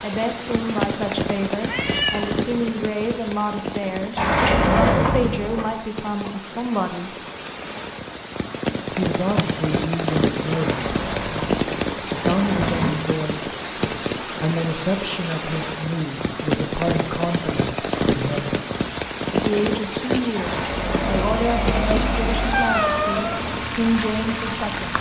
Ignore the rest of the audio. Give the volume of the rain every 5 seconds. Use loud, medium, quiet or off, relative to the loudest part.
loud, medium, loud, loud, loud.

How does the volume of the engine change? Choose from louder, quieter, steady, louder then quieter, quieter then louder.
quieter.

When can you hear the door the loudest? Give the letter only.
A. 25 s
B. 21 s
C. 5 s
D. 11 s
C.